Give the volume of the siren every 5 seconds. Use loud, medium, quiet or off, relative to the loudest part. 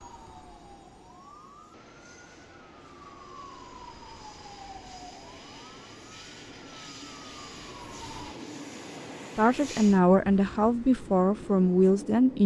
loud, loud, off.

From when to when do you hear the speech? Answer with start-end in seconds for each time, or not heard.
9.3-12.4.